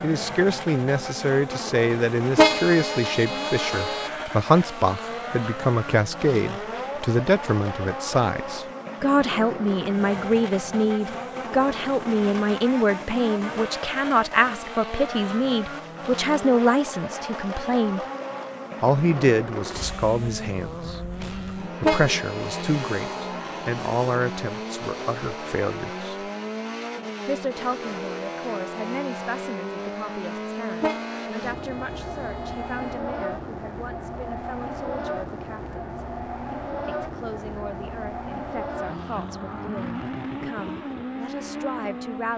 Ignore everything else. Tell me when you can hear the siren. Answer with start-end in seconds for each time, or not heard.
not heard.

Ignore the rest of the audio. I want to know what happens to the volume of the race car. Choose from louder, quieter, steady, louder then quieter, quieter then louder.
steady.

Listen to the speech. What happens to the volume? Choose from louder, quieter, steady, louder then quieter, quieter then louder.
quieter.